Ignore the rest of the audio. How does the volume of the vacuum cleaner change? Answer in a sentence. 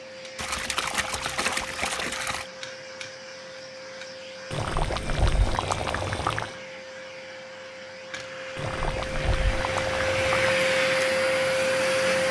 The loudness of the vacuum cleaner goes up.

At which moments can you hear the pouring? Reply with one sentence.
The pouring can be heard from 0.3 to 2.5 s, from 4.5 to 6.5 s and from 8.6 to 10.6 s.